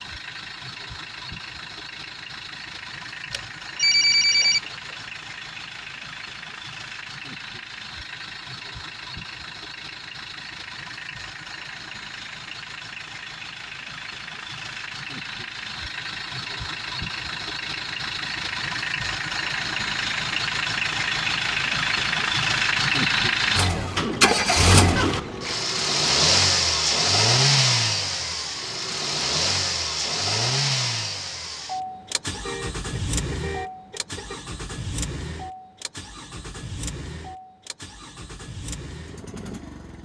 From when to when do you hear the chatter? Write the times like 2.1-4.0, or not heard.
not heard.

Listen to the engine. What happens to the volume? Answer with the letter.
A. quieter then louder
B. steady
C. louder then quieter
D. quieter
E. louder
C.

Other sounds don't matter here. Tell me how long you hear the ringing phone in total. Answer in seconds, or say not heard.
2 s.